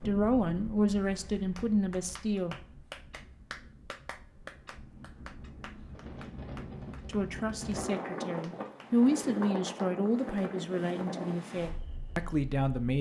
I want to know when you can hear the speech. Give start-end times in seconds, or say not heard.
0.1-2.5, 7.0-12.9.